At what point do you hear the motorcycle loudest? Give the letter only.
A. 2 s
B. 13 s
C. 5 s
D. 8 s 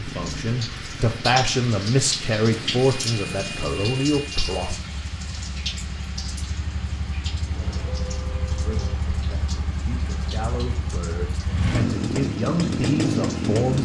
B.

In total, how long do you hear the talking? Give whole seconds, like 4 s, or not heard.
10 s.